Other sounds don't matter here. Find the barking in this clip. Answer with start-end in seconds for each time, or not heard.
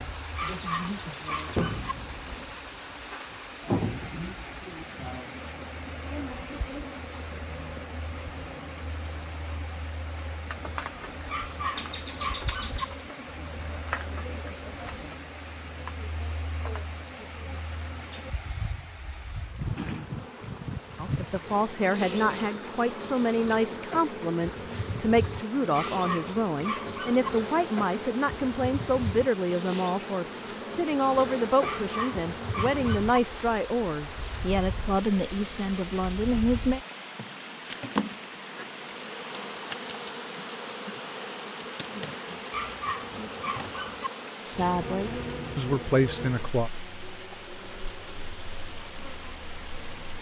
0.3-1.9, 11.3-12.8, 25.7-27.3, 31.6-33.1, 42.5-44.1.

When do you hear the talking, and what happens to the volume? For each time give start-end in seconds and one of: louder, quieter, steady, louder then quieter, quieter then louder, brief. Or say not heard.
20.9-36.8 steady
44.4-46.7 brief.